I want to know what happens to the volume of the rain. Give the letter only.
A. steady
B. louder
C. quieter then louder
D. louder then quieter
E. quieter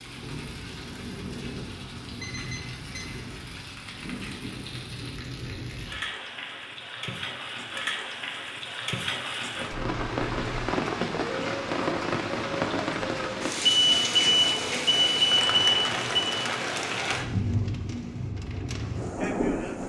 B.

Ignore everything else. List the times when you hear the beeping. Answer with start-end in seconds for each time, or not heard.
2.2-3.1, 9.7-10.8, 13.7-16.3.